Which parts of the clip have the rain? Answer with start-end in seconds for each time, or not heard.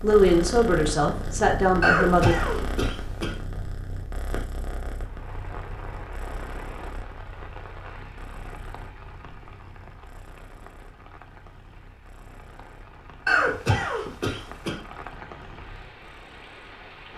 4.9-17.1.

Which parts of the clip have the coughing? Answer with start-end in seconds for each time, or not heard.
1.8-3.3, 13.2-14.8.